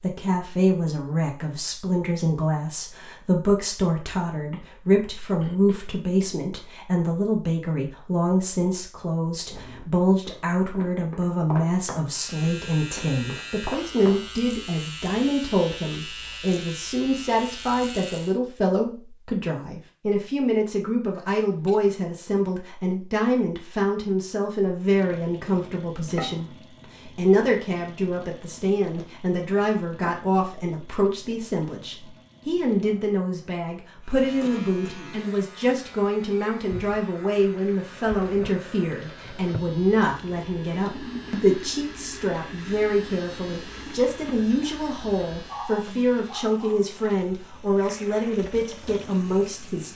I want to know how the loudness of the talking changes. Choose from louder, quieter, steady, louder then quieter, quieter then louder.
steady.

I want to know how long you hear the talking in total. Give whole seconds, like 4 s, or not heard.
50 s.